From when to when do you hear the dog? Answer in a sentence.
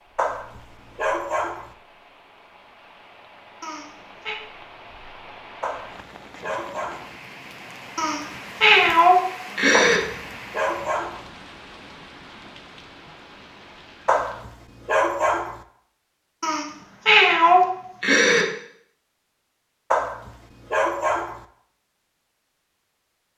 The dog can be heard from 0.1 to 1.8 s, from 5.6 to 7.2 s, from 9.7 to 11.3 s, from 14.1 to 15.6 s and from 19.9 to 21.4 s.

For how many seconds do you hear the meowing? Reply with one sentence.
The meowing can be heard for 5 seconds in total.